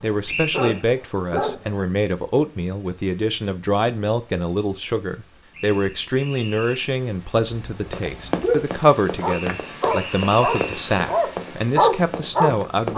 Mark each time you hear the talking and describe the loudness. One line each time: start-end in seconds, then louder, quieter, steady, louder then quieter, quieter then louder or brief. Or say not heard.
0.0-12.9 steady.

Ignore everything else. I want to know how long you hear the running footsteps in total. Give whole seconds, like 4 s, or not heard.
5 s.